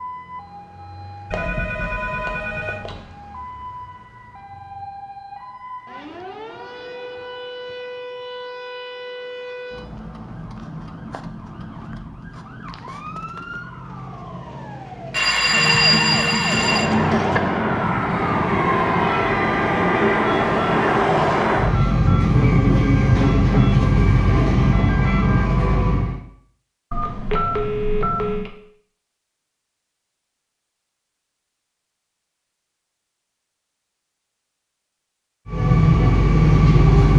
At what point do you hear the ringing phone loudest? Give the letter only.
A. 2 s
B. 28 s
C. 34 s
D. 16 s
D.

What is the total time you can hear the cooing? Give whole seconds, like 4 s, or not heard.
not heard.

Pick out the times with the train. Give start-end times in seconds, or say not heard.
16.4-26.2, 35.5-37.1.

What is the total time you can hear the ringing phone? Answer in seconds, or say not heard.
5 s.